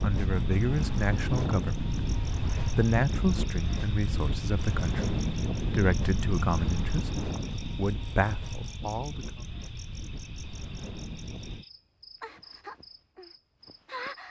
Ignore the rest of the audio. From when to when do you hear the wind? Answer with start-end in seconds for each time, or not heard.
0.0-11.7.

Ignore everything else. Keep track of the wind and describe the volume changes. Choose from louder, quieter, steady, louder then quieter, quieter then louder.
quieter.